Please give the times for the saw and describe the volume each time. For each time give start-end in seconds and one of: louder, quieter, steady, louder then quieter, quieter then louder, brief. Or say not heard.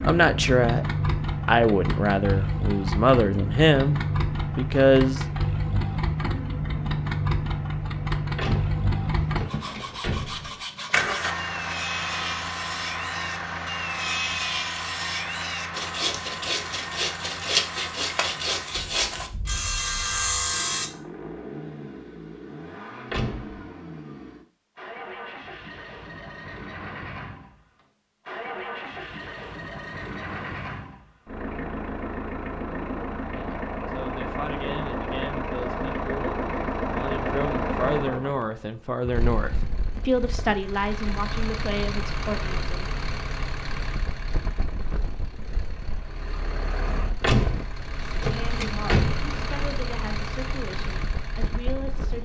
9.4-20.9 louder.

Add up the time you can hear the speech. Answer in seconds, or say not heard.
18 s.